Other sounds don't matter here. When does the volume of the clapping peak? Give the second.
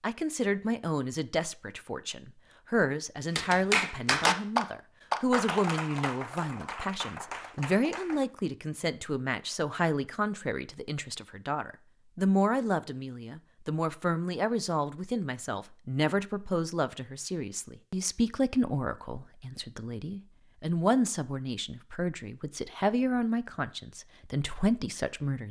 4 s.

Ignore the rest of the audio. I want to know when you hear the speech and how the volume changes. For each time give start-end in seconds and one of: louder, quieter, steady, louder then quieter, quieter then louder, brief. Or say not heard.
0.0-25.4 steady.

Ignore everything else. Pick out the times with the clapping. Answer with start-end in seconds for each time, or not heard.
3.4-8.2.